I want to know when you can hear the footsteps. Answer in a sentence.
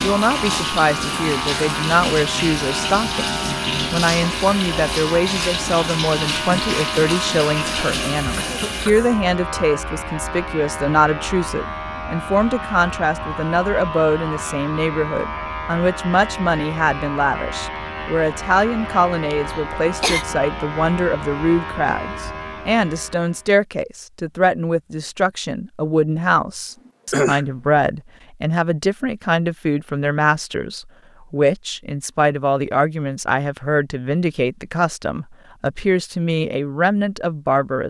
You can't hear the footsteps here.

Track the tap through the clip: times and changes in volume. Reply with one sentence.
You can hear the tap from 0.0 to 8.9 s, at a steady volume.